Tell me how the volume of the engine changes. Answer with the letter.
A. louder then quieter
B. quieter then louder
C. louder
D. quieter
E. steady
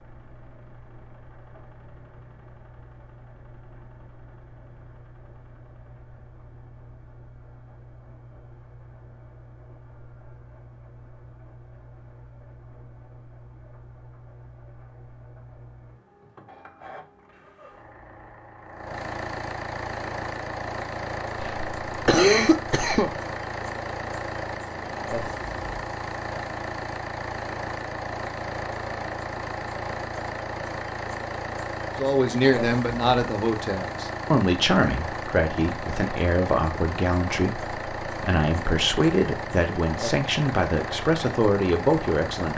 C.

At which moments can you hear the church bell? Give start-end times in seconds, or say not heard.
not heard.